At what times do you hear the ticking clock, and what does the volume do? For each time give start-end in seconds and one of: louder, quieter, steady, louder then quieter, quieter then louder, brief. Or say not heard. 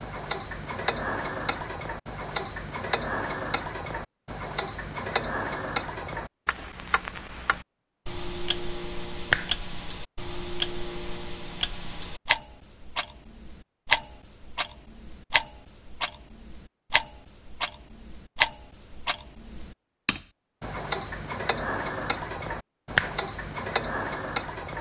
0.0-24.7 steady.